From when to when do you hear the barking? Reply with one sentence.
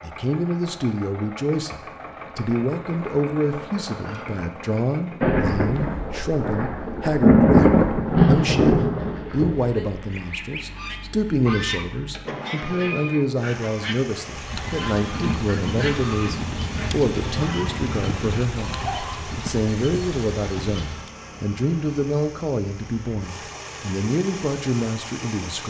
You can't hear the barking here.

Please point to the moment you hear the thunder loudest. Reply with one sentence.
The loudest moment of the thunder is at 7 seconds.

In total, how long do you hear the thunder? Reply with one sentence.
The thunder can be heard for 8 seconds in total.